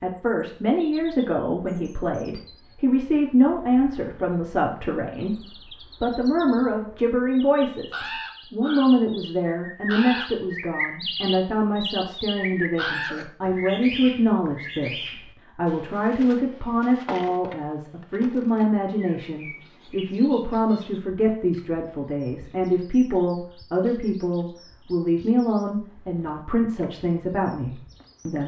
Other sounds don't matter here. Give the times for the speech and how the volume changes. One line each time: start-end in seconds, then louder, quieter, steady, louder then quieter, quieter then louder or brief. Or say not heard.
0.0-28.4 steady.